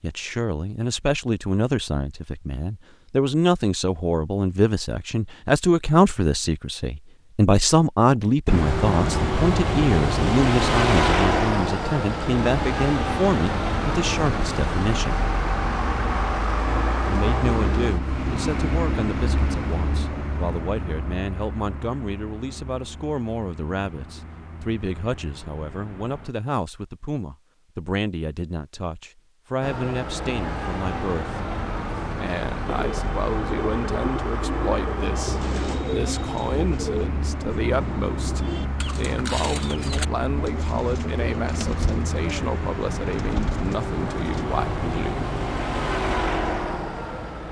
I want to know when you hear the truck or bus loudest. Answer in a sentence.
The volume of the truck or bus peaks at 11 seconds.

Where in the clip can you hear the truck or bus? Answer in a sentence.
You can hear the truck or bus from 8.4 to 26.3 s and from 29.6 to 47.4 s.